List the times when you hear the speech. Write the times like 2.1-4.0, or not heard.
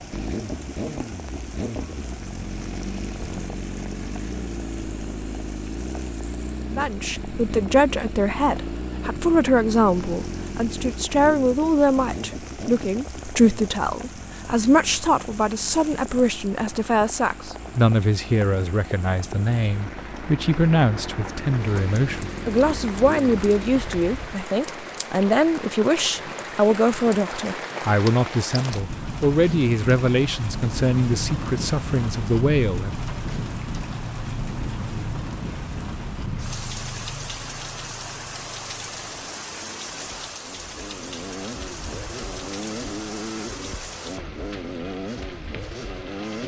6.7-33.0.